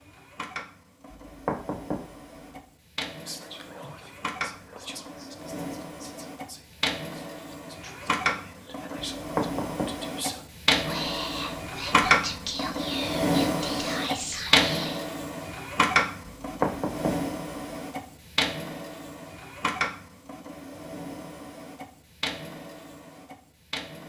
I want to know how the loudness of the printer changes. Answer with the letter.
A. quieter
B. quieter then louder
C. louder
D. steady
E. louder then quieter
E.